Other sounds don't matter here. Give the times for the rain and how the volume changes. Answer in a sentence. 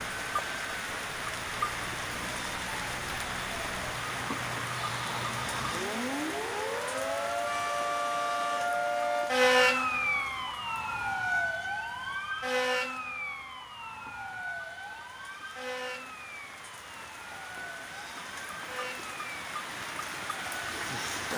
You can hear the rain from 0.0 to 21.3 s, getting quieter then louder.